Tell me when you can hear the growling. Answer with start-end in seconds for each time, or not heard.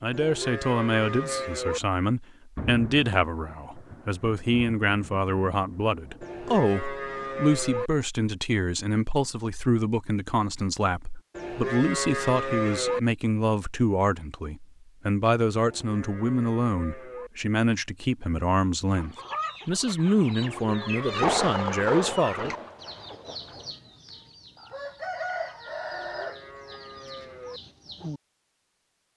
not heard.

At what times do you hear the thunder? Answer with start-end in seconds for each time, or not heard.
2.5-6.5, 21.1-23.6.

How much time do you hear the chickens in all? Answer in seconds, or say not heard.
9 s.